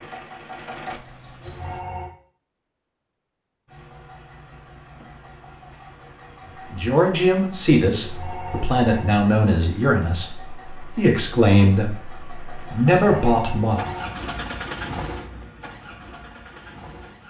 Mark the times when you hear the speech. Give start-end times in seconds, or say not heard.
6.7-13.9.